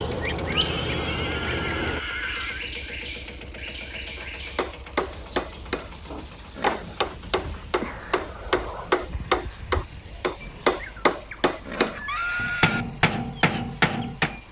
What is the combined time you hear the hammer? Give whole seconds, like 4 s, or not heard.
10 s.